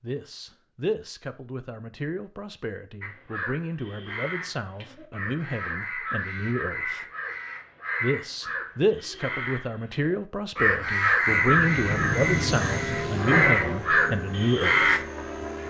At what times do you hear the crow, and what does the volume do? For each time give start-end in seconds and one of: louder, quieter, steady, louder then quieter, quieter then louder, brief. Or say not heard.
3.0-15.0 louder.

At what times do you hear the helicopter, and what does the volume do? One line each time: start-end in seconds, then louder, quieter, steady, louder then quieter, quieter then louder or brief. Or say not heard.
11.2-15.6 quieter.